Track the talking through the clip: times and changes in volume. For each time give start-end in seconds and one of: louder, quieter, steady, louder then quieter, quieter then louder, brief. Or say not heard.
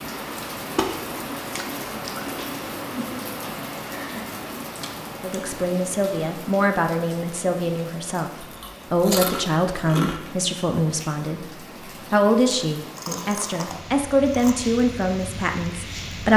5.2-16.3 steady.